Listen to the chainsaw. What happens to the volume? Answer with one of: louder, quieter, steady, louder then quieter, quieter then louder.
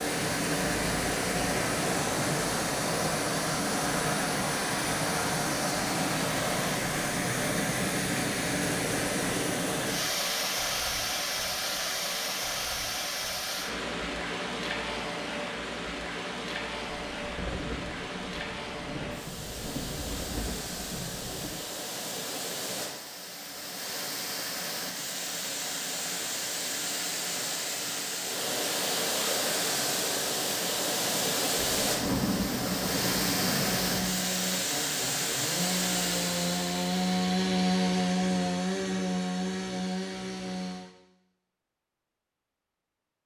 louder then quieter.